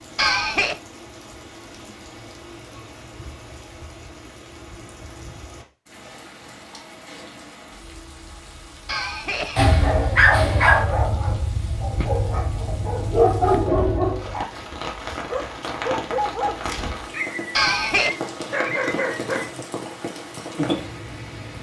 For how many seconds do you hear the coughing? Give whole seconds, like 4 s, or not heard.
2 s.